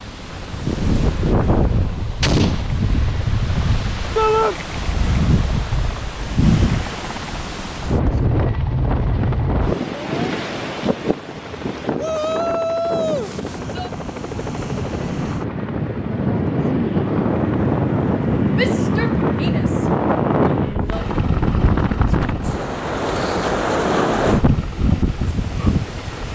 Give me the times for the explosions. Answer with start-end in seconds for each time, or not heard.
2.2-2.7.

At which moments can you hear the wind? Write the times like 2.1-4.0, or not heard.
0.0-26.2.